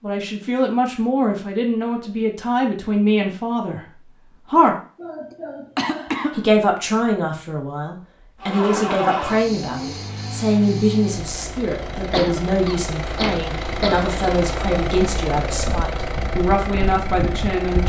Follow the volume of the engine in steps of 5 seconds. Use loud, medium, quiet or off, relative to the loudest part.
off, loud, loud, loud.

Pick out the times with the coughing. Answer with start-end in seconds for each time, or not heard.
4.5-6.5, 12.1-14.1.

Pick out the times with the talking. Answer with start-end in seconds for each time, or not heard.
0.0-4.8, 6.3-17.8.